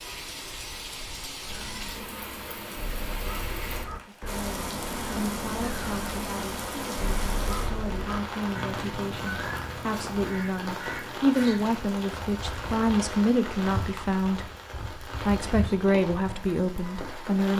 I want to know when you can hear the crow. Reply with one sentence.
The crow can be heard from 1.4 to 11.9 s.